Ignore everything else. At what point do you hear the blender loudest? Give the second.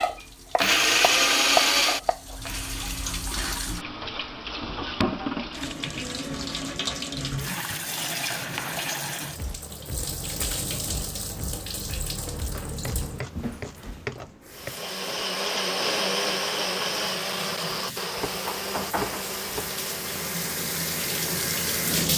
1 s.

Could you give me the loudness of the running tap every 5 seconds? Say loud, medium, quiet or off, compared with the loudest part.
medium, loud, medium, medium, loud.